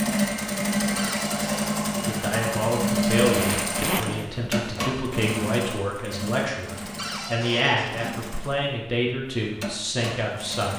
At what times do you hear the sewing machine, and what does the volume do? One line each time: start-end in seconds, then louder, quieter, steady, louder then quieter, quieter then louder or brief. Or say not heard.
0.0-10.7 quieter.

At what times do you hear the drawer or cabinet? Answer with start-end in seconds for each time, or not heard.
0.9-1.8, 7.0-8.2.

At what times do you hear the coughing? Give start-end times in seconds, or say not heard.
not heard.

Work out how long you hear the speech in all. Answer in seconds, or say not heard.
9 s.